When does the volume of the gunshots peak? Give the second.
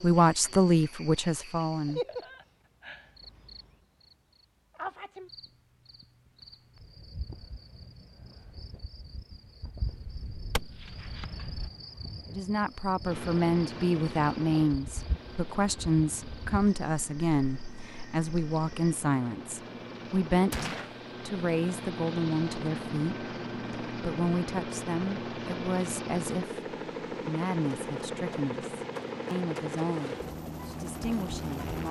21 s.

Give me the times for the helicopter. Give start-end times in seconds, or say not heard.
13.1-31.8.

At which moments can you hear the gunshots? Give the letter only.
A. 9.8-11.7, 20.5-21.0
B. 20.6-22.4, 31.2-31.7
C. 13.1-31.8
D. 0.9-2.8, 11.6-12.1
A.